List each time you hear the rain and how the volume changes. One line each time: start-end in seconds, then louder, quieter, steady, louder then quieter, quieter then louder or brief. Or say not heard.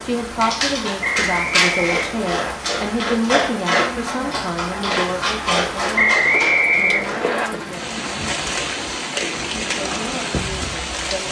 0.0-11.2 louder.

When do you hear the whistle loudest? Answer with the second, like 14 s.
6 s.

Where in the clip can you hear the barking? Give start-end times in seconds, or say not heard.
0.4-7.3.